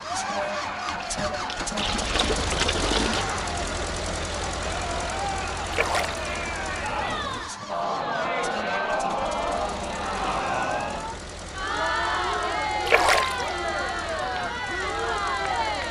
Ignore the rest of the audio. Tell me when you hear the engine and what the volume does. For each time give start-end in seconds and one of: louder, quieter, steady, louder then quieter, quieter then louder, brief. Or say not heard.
0.0-15.8 quieter.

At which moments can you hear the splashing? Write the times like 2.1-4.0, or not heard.
0.8-3.2, 5.7-6.2, 12.8-13.4.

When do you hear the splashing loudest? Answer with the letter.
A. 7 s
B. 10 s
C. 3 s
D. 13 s
D.